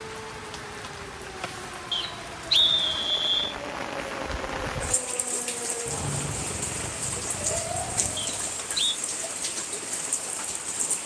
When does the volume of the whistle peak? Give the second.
3 s.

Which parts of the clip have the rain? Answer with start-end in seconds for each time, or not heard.
0.0-11.0.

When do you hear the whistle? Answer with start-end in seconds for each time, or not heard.
1.9-3.5, 8.2-9.0.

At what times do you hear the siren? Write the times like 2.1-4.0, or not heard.
0.0-8.6.